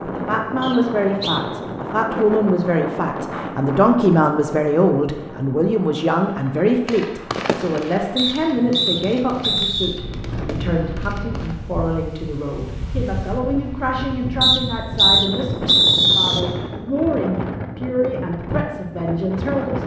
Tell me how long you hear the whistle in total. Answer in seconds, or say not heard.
5 s.